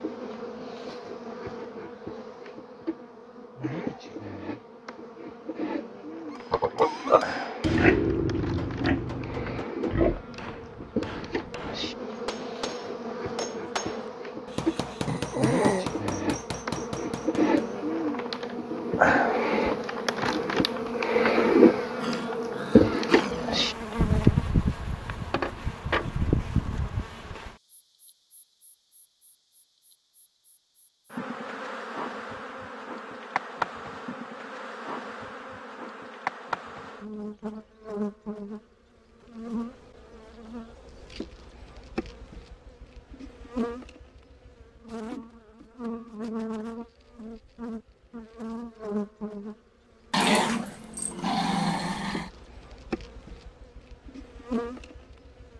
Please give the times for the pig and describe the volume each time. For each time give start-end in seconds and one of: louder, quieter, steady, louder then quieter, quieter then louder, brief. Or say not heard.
6.3-11.7 quieter.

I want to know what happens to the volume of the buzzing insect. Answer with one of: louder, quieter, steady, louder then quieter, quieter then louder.
louder then quieter.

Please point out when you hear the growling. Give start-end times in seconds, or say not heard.
15.1-15.9, 22.0-23.6, 50.1-52.3.